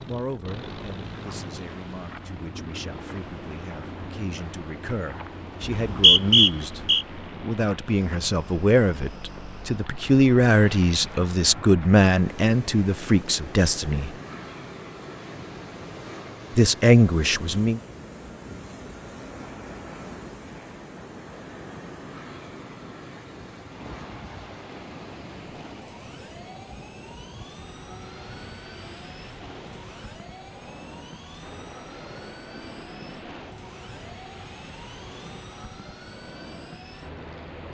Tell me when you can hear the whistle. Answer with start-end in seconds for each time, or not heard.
5.7-7.0.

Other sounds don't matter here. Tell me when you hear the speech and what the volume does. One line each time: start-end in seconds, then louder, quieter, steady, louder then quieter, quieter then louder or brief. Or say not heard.
0.0-14.1 louder
16.6-17.8 brief.